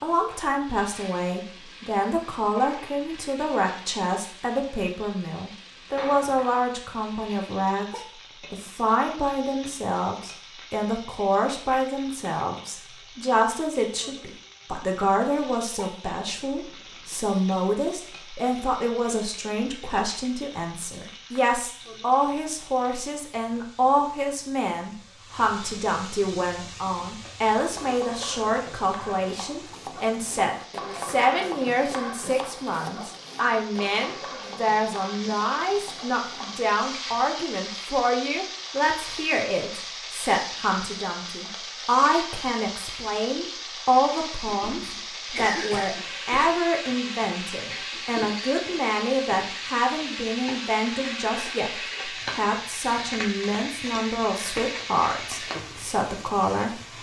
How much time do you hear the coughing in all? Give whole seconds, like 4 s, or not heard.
2 s.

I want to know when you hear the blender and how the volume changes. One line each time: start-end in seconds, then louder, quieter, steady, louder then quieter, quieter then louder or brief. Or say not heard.
not heard.